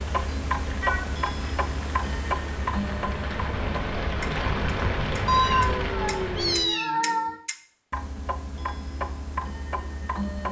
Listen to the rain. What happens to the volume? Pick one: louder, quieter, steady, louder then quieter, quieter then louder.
louder.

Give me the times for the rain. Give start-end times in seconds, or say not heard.
0.0-6.8.